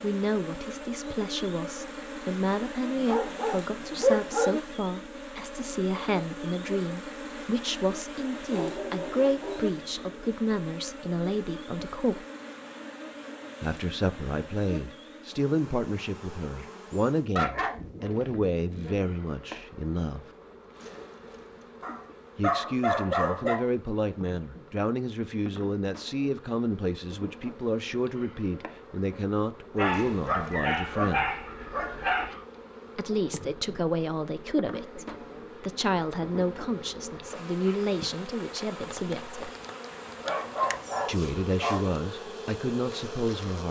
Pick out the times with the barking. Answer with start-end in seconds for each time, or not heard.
3.0-4.5, 8.4-10.2, 17.4-19.1, 21.8-23.6, 29.8-32.4, 40.2-41.9.